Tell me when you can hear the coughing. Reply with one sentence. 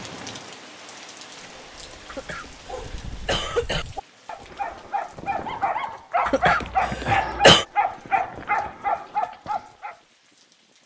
The coughing can be heard from 2.0 to 3.9 s and from 6.2 to 7.7 s.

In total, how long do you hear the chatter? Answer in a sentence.
The chatter can't be heard in this clip.